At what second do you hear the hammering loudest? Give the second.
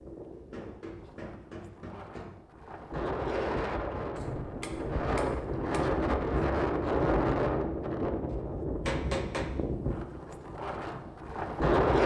9 s.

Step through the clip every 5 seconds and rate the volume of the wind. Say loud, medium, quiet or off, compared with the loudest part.
medium, loud, loud.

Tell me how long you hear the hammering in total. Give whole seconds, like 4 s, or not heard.
5 s.